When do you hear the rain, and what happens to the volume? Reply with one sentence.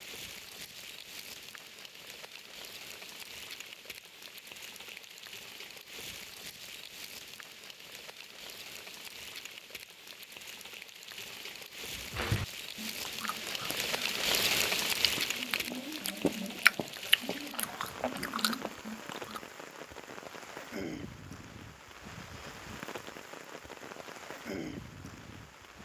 The rain can be heard from 0.0 to 25.8 s, getting louder then quieter.